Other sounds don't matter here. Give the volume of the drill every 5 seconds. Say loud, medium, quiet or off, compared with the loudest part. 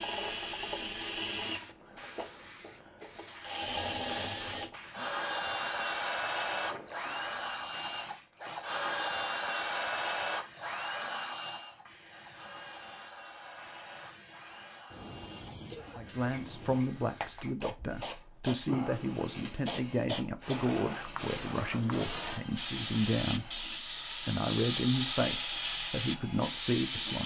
loud, loud, medium, quiet, quiet, quiet.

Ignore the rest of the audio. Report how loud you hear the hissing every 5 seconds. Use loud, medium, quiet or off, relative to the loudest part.
quiet, quiet, quiet, medium, loud, loud.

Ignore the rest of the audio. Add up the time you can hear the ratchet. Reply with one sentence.
The ratchet can't be heard in this clip.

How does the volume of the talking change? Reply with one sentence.
The loudness of the talking stays about the same.